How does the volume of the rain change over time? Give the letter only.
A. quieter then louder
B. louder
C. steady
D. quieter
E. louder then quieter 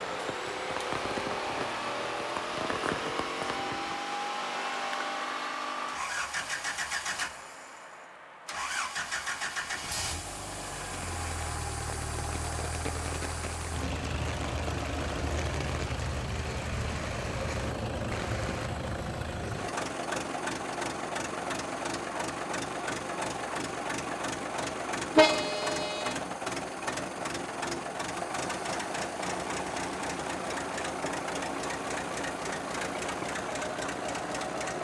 A.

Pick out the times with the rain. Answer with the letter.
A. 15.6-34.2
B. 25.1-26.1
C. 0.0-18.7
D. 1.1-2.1
C.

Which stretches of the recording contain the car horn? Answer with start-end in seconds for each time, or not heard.
25.1-26.1.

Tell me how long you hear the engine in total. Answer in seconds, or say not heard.
35 s.